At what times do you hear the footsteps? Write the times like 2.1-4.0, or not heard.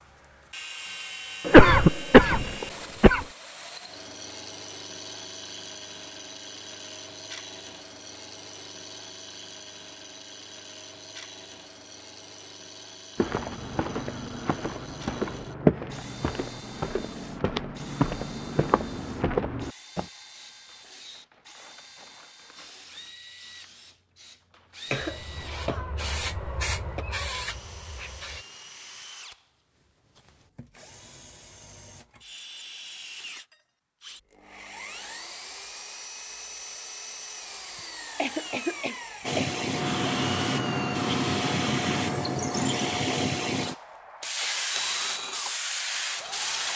13.2-20.1.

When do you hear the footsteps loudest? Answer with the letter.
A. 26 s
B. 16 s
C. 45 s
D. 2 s
B.